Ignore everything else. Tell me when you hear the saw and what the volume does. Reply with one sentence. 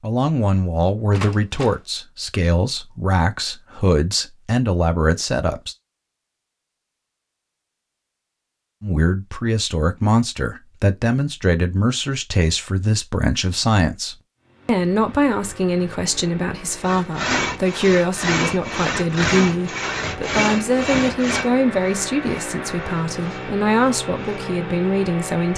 You can hear the saw from 16.8 to 24.6 s, getting quieter.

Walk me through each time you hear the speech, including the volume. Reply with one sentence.
The speech can be heard from 0.0 to 5.8 s, at a steady volume; and from 8.8 to 25.5 s, at a steady volume.